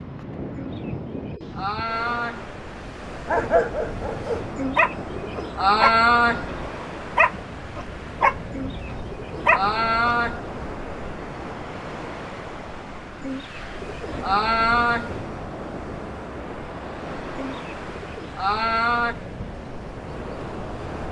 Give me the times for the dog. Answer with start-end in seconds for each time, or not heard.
3.2-10.2.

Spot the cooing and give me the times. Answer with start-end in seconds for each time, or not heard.
0.6-2.5, 4.5-6.5, 8.5-10.4, 13.2-15.1, 17.4-19.1.